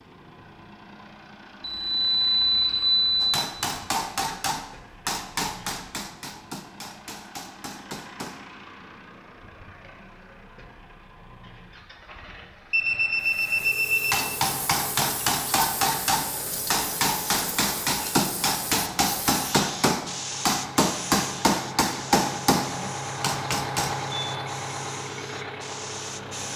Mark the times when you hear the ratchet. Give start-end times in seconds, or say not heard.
not heard.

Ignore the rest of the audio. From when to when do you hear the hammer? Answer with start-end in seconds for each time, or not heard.
3.2-8.4, 14.1-24.0.